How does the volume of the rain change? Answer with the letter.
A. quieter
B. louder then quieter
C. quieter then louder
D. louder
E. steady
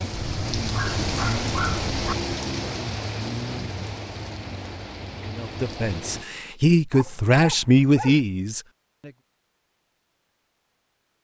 A.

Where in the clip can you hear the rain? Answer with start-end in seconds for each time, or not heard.
0.0-6.3.